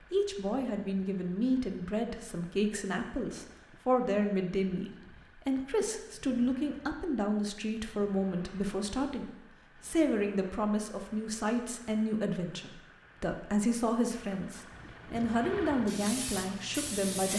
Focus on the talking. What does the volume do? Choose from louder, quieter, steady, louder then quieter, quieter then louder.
steady.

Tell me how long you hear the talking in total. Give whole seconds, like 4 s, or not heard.
17 s.